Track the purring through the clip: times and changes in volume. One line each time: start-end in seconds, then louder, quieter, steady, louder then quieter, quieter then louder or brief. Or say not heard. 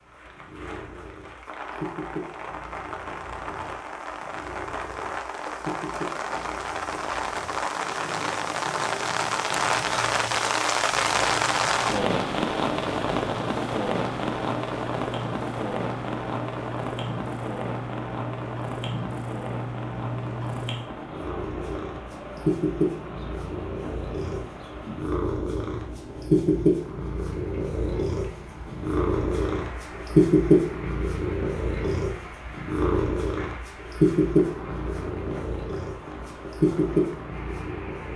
0.0-38.1 louder.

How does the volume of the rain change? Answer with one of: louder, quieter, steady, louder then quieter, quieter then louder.
louder then quieter.